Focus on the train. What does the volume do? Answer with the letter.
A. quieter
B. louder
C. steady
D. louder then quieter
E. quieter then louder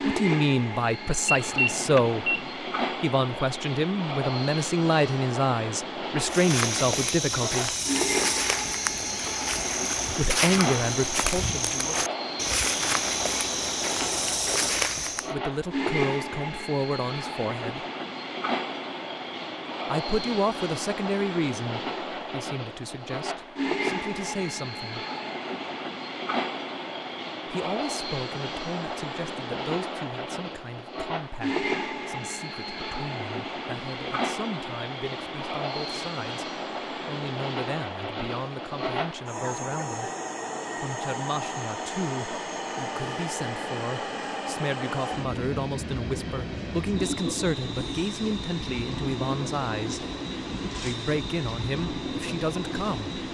C.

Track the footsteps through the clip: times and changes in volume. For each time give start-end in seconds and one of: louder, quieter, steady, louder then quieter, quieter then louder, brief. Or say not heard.
6.2-15.3 steady.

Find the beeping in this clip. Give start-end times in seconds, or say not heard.
1.2-2.5.